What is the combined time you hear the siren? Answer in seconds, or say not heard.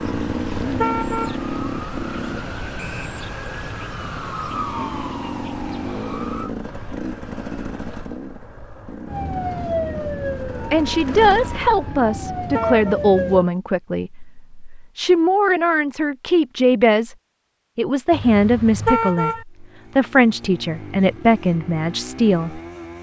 11 s.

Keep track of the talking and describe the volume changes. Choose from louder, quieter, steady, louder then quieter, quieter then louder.
steady.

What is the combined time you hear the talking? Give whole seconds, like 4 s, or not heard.
11 s.